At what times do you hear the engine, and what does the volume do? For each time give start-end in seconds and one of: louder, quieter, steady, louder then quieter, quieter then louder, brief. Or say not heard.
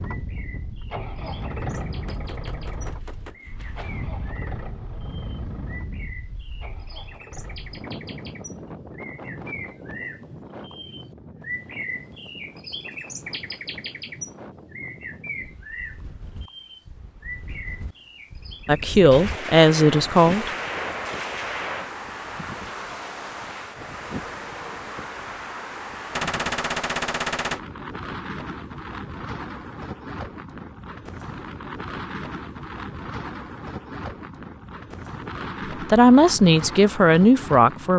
0.0-8.8 quieter.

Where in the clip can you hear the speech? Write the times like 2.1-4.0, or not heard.
18.6-20.5, 35.8-37.9.